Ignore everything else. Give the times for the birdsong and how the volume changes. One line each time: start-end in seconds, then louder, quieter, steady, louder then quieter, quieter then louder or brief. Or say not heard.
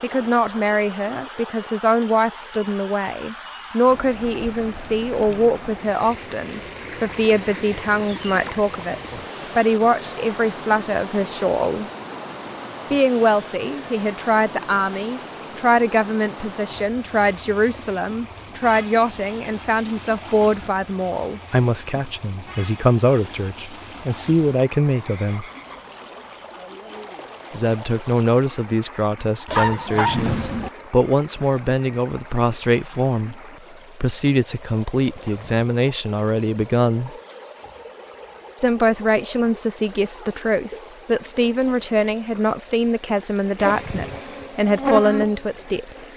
not heard.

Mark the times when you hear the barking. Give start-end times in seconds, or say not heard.
29.4-30.7.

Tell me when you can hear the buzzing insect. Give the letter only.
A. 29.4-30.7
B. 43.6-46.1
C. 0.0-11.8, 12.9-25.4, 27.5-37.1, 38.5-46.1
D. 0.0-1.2
B.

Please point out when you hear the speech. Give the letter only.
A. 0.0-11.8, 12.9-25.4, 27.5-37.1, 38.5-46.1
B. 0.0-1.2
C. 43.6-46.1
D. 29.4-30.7
A.